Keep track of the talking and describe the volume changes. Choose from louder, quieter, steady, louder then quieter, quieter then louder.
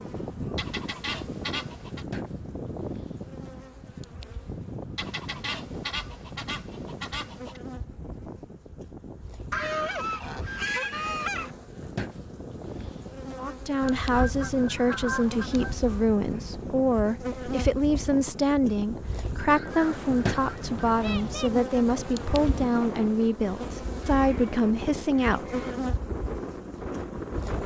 steady.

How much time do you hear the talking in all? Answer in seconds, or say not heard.
12 s.